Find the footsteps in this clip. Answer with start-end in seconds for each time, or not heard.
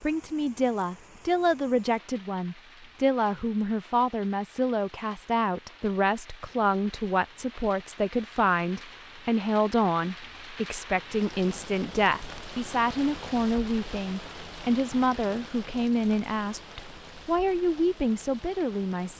not heard.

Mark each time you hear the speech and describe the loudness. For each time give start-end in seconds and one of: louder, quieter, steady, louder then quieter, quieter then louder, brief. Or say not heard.
0.0-19.1 steady.